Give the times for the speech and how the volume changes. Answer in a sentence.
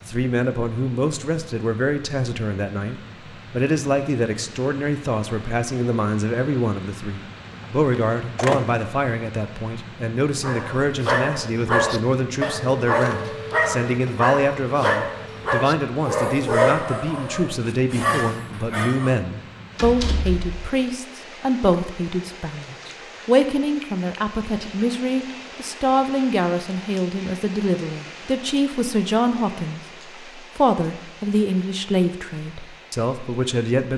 The speech can be heard from 0.1 to 33.9 s, at a steady volume.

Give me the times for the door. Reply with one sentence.
You can hear the door from 7.9 to 8.8 s and from 19.8 to 20.6 s.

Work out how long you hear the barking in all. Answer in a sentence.
The barking can be heard for 9 seconds in total.